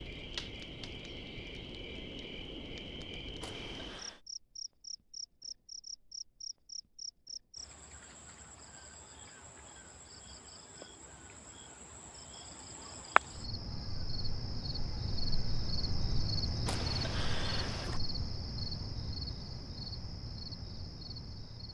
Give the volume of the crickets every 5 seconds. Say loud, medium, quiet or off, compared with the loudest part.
medium, medium, loud, loud, medium.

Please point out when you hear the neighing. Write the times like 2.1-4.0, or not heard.
3.4-4.2, 16.6-18.0.